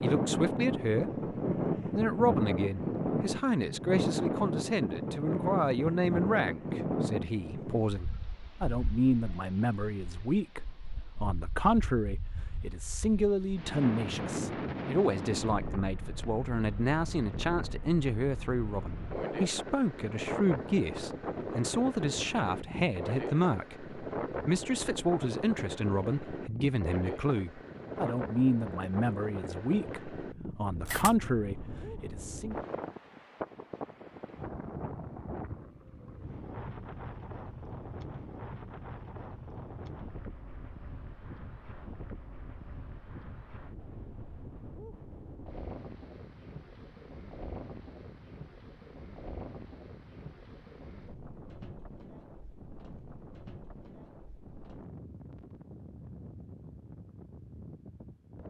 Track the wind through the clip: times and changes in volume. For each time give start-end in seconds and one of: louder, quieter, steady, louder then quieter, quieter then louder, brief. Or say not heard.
0.0-58.4 quieter.